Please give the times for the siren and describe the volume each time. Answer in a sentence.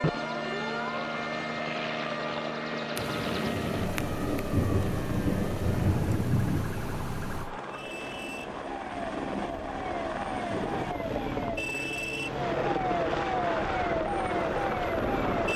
You can hear the siren from 0.0 to 15.5 s, getting quieter then louder.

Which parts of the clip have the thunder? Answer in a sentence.
The thunder can be heard from 3.0 to 7.5 s.